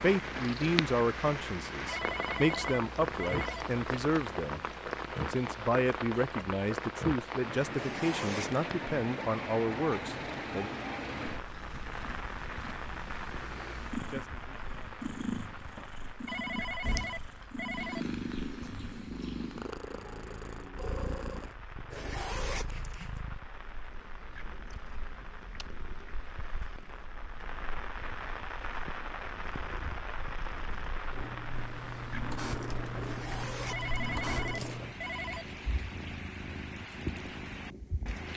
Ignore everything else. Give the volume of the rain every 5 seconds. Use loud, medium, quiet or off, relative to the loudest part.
loud, loud, loud, quiet, quiet, medium, medium, medium.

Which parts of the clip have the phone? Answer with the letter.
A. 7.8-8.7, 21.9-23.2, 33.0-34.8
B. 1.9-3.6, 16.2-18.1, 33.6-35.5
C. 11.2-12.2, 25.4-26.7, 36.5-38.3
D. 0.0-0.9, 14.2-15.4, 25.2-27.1
B.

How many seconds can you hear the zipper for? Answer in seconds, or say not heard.
4 s.